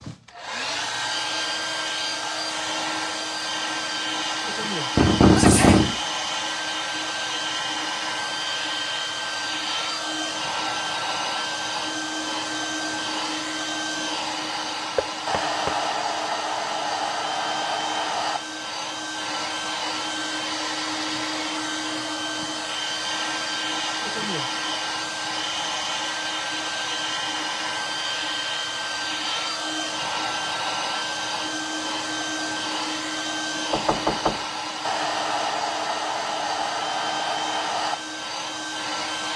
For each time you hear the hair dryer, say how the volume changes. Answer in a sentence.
The hair dryer can be heard from 0.0 to 39.3 s, at a steady volume.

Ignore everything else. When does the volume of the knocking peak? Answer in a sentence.
The loudest moment of the knocking is at 5 seconds.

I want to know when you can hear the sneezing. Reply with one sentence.
You can hear the sneezing from 5.3 to 5.9 s.